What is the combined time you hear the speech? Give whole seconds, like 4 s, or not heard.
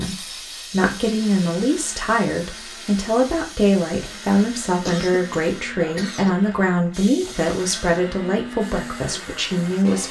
10 s.